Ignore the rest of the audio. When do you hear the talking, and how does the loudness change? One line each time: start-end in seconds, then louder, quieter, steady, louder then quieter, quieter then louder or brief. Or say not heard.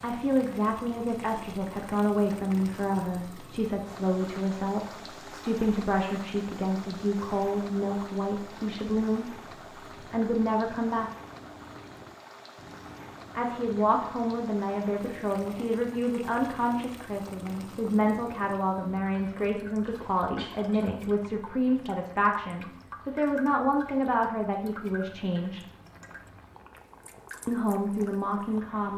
0.0-9.3 steady
10.1-11.1 brief
13.3-25.6 steady
27.4-28.9 brief.